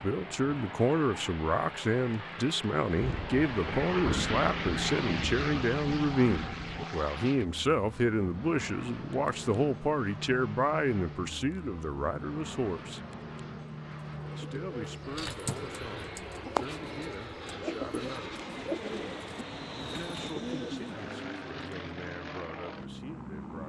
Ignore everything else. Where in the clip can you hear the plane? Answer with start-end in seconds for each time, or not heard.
0.0-23.6.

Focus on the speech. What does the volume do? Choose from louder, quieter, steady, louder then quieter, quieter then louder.
quieter.